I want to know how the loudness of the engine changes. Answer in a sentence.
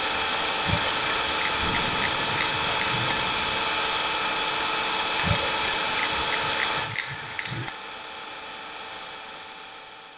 The loudness of the engine goes down.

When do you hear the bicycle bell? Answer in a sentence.
You can hear the bicycle bell from 0.6 to 3.2 s and from 5.2 to 7.8 s.